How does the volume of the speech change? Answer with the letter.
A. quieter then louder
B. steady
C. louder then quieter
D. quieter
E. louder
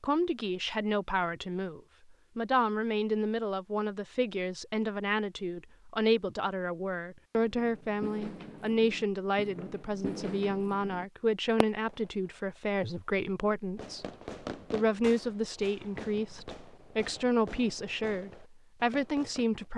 B.